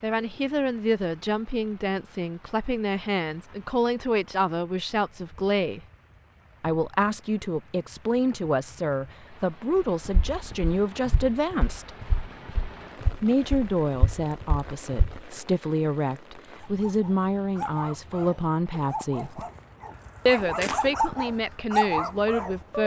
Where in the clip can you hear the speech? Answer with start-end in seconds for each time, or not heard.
0.0-5.8, 6.6-11.9, 13.2-19.4, 20.2-22.8.